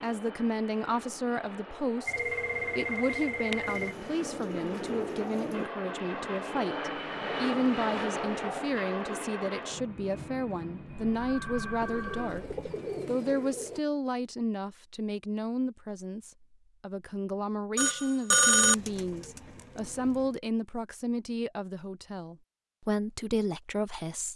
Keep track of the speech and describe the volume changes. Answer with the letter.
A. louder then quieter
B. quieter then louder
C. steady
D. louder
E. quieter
C.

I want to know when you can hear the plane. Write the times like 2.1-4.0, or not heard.
0.0-13.5.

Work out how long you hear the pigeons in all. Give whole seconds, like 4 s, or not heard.
6 s.